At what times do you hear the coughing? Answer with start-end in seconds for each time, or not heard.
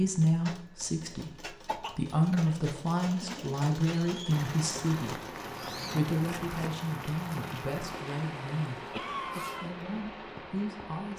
1.6-4.0, 8.9-9.7.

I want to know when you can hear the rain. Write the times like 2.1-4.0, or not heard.
4.3-11.1.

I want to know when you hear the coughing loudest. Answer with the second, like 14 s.
9 s.